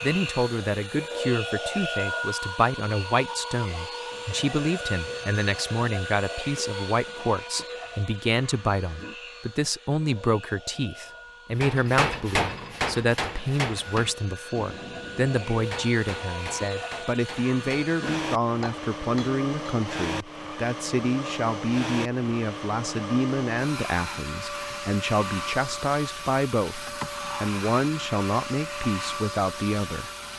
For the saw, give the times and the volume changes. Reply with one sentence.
You can't hear the saw here.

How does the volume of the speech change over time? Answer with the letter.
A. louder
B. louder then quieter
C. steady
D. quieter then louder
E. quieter
C.